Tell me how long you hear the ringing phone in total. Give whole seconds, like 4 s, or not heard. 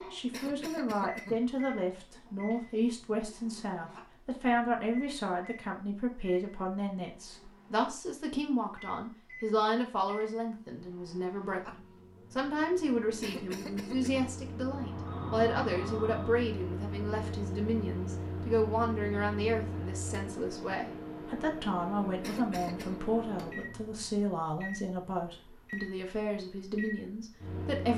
2 s.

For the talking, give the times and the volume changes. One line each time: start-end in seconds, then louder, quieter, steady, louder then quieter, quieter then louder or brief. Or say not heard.
0.1-27.9 steady.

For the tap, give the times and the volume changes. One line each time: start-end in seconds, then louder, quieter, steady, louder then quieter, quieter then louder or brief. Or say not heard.
not heard.